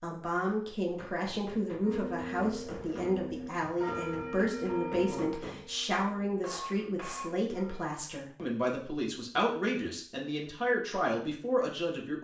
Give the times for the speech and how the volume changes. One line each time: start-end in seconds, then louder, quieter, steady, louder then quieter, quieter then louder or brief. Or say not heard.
0.0-12.1 steady.